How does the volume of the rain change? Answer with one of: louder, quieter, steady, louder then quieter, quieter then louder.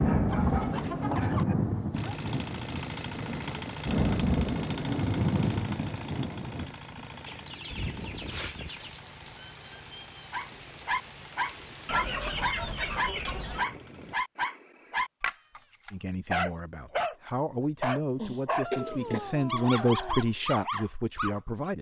quieter.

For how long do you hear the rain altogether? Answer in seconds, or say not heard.
12 s.